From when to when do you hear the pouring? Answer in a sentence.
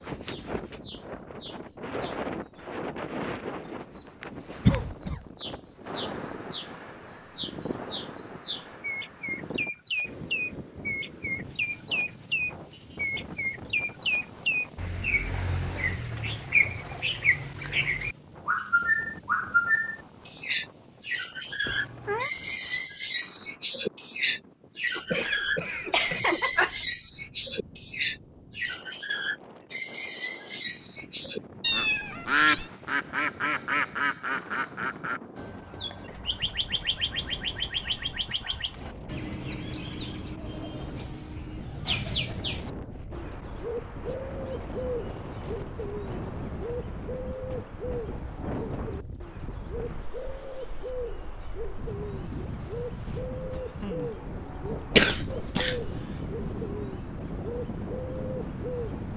The pouring can't be heard in this clip.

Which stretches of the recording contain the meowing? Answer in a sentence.
The meowing can be heard from 21.6 to 22.3 s and from 31.6 to 32.7 s.